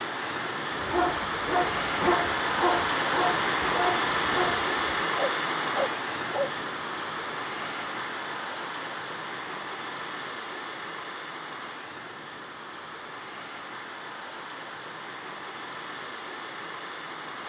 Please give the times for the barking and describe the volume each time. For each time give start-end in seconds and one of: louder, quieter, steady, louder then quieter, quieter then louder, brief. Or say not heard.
0.7-6.5 steady.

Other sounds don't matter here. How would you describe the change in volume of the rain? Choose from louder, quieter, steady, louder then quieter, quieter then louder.
quieter.